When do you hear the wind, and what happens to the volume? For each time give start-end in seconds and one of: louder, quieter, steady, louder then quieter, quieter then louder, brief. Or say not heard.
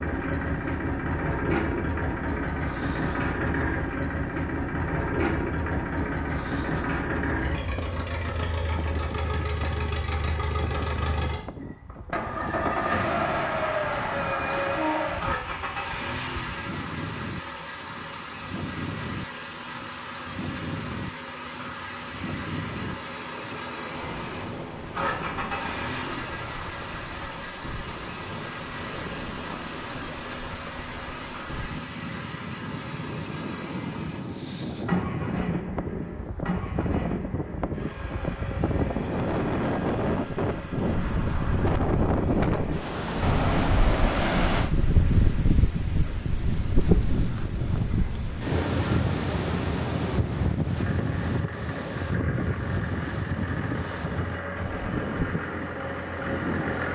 0.0-56.9 louder.